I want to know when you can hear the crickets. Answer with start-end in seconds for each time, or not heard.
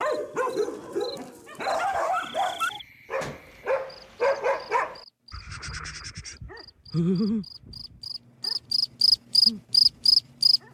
0.0-10.6.